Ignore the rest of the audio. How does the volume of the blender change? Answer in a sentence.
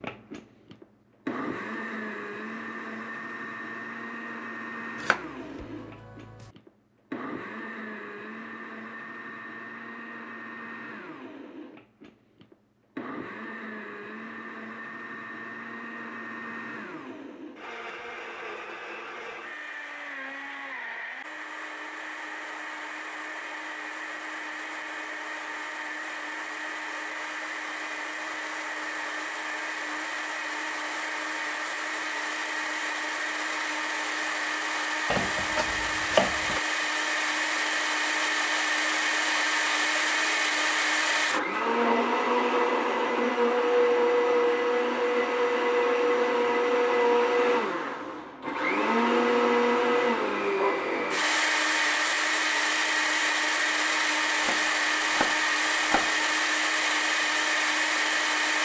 The volume of the blender goes up.